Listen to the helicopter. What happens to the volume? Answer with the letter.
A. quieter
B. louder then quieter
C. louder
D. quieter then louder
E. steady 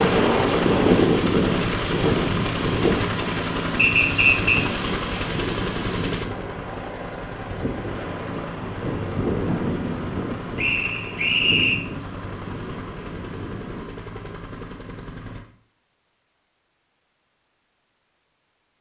A.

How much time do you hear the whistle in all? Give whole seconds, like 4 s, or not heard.
2 s.